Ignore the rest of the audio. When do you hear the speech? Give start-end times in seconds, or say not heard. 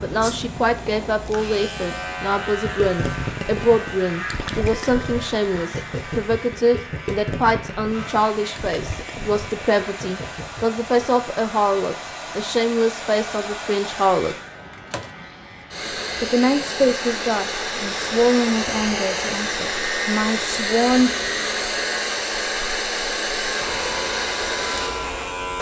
0.0-14.3, 16.2-21.1.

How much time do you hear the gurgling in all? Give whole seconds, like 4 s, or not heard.
9 s.